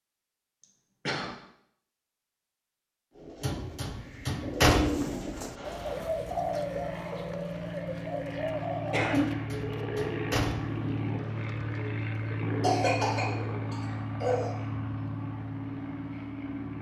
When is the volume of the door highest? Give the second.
5 s.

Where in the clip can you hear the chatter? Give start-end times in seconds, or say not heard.
not heard.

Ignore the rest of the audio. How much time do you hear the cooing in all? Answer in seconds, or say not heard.
11 s.